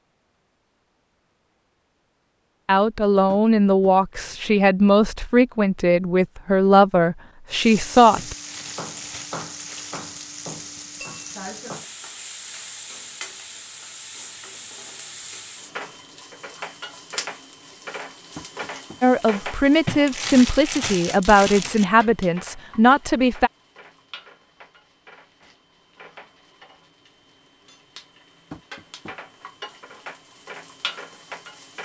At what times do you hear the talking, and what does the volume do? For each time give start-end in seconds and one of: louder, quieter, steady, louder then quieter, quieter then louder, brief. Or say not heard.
2.6-8.3 steady
19.0-23.5 steady.